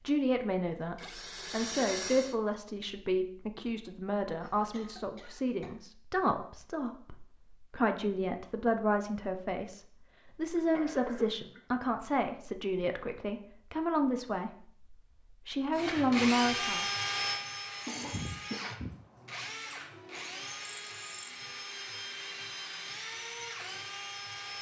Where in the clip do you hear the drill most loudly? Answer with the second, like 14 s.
17 s.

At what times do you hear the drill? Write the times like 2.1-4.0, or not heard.
0.0-2.4, 15.7-24.5.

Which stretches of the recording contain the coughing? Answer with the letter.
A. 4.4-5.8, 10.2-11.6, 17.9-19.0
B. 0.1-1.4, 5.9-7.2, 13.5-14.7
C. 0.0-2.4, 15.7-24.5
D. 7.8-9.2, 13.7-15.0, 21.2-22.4
A.